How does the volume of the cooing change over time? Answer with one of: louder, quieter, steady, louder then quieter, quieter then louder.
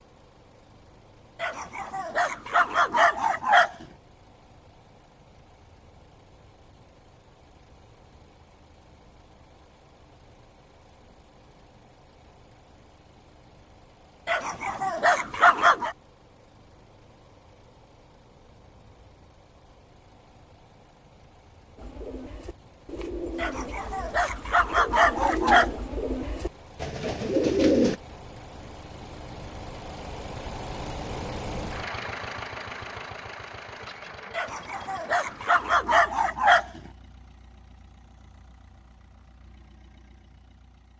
louder.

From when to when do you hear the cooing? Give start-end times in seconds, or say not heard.
21.8-27.9.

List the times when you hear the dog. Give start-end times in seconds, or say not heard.
1.4-3.9, 14.2-15.9, 23.4-25.7, 34.4-36.8.